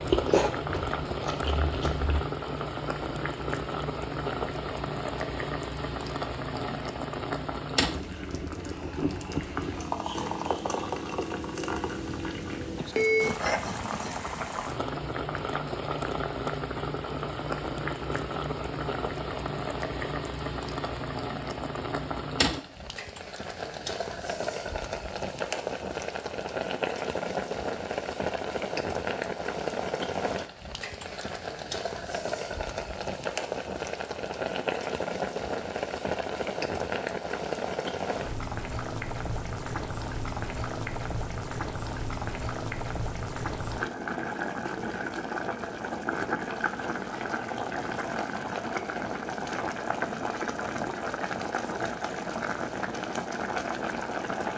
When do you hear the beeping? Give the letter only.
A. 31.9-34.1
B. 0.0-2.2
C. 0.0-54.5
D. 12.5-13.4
D.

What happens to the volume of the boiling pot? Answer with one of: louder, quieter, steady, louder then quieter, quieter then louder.
steady.